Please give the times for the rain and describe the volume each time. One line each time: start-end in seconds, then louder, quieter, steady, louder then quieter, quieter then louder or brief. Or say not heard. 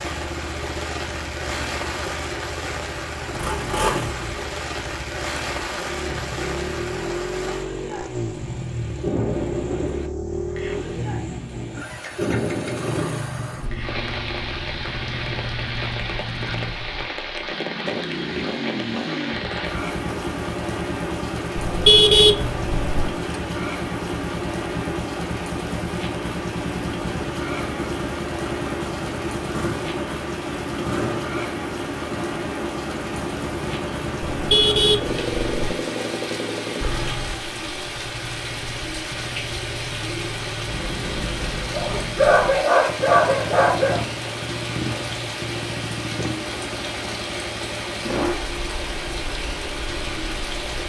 0.0-50.8 steady.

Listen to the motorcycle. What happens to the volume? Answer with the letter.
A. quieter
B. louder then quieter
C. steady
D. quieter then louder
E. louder
C.